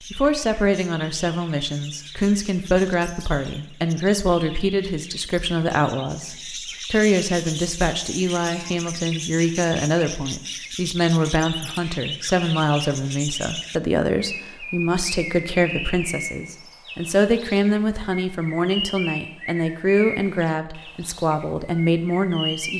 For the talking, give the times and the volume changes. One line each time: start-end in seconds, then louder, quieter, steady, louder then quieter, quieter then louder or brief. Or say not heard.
0.1-22.7 steady.